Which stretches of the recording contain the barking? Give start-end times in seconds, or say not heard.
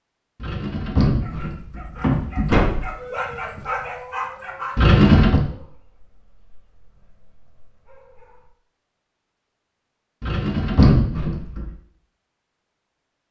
1.1-8.5.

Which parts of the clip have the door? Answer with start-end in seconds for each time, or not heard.
0.4-2.9, 4.8-5.4, 10.2-11.7.